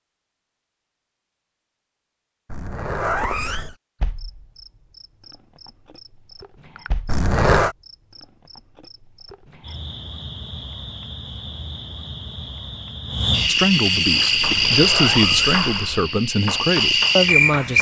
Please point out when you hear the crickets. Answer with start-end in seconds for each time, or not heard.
4.0-17.7.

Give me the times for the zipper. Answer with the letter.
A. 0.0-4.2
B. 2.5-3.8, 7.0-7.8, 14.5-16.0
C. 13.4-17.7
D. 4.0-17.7
B.